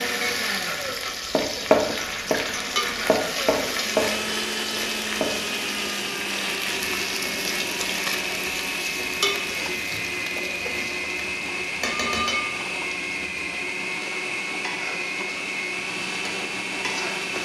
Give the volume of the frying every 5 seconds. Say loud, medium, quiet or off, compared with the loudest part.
loud, loud, loud, medium.